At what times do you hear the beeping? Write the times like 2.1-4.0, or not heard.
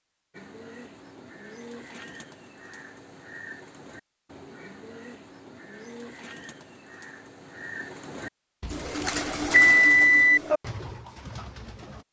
8.6-10.4.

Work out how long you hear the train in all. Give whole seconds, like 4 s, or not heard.
not heard.